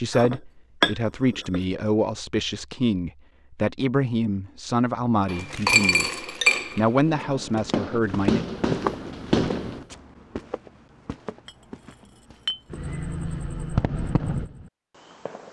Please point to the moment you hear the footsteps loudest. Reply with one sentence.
The volume of the footsteps peaks at 9 seconds.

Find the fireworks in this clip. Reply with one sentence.
You can hear the fireworks from 7.0 to 9.8 s and from 12.7 to 15.4 s.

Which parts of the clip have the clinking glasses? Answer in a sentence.
You can hear the clinking glasses from 0.1 to 1.6 s, from 5.2 to 7.2 s and from 11.4 to 12.6 s.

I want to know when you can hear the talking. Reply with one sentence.
You can hear the talking from 0.0 to 8.4 s.